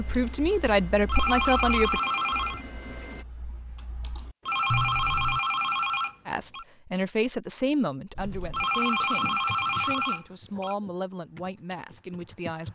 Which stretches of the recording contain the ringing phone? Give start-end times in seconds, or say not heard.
1.1-2.6, 4.5-6.7, 8.5-10.8.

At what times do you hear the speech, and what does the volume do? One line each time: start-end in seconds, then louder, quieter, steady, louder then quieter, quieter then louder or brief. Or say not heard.
0.0-2.0 brief
6.2-12.6 quieter.